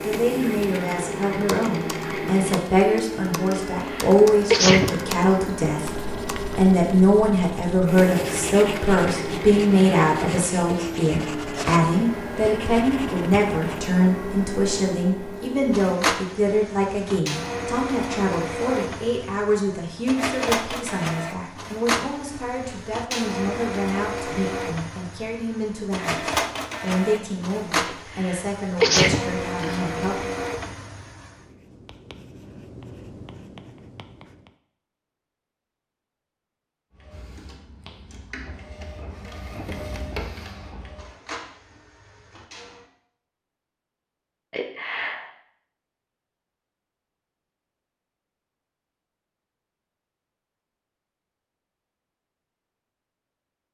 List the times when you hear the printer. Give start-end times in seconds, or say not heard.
0.0-31.4, 36.9-42.9.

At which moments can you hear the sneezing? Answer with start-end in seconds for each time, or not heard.
3.5-4.9, 27.9-29.9, 44.5-45.3.